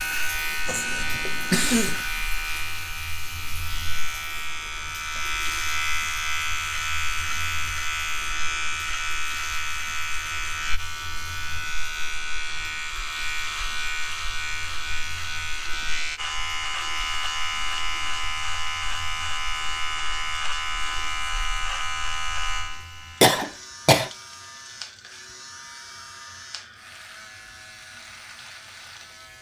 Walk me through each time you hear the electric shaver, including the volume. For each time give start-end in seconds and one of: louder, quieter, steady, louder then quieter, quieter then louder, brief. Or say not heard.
0.0-29.3 quieter.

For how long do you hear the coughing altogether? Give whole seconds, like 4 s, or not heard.
2 s.